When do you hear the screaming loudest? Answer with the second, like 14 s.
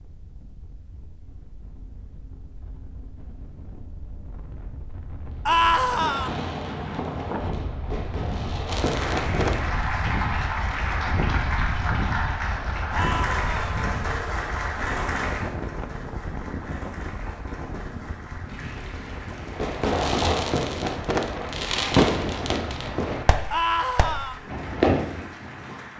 6 s.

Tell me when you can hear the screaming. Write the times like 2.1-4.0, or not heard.
5.5-6.3, 12.9-13.8, 23.5-24.4.